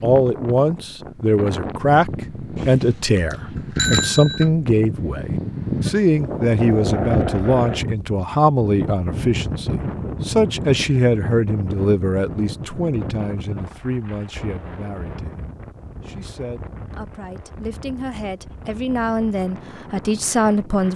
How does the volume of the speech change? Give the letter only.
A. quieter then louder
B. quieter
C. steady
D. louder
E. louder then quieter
A.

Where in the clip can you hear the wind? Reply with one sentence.
You can hear the wind from 0.0 to 20.9 s.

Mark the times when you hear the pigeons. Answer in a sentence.
You can't hear the pigeons here.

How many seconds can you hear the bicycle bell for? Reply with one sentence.
You can hear the bicycle bell for 2 seconds altogether.